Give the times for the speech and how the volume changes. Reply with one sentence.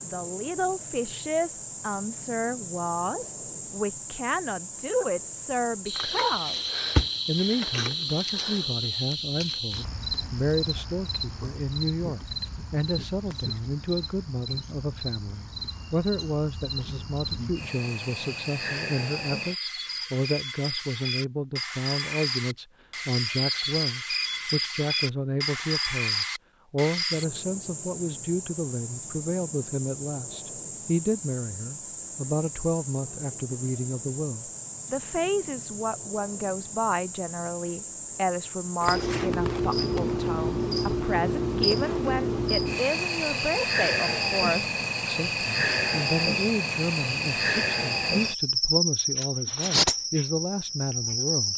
The speech can be heard from 0.0 to 51.5 s, at a steady volume.